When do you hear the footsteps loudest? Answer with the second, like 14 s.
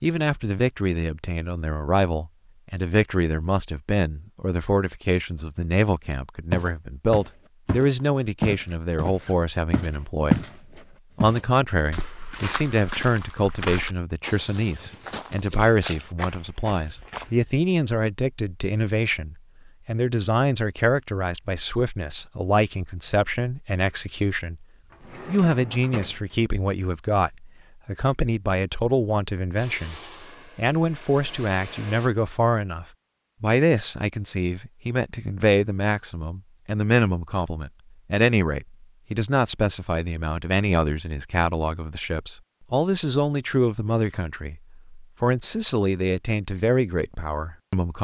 10 s.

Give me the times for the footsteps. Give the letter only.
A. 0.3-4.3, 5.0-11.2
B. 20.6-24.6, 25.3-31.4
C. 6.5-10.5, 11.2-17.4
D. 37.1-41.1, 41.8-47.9
C.